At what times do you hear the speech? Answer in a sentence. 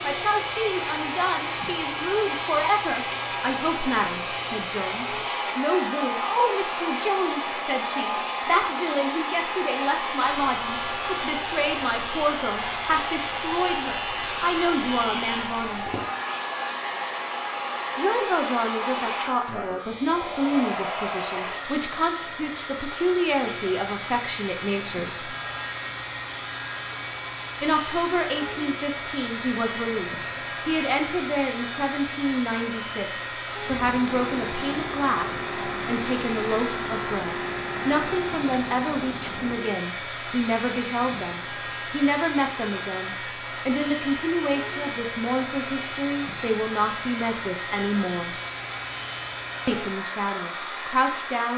The speech can be heard from 0.0 to 15.8 s, from 17.9 to 25.3 s, from 27.6 to 48.4 s and from 49.6 to 51.5 s.